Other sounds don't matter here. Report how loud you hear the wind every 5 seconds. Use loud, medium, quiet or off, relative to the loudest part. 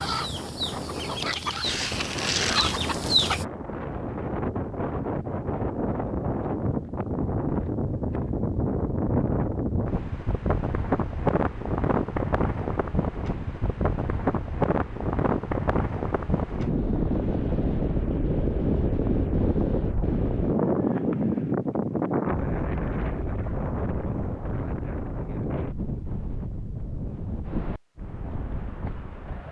medium, loud, loud, loud, loud, medium.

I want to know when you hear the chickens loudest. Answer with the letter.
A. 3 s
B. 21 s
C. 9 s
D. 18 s
A.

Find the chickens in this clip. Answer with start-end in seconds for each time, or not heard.
0.0-3.5.